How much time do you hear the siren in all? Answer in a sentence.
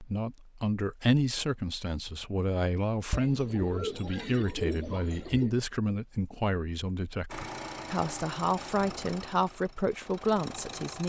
The siren can't be heard in this clip.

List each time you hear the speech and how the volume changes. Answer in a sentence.
The speech can be heard from 0.0 to 11.0 s, at a steady volume.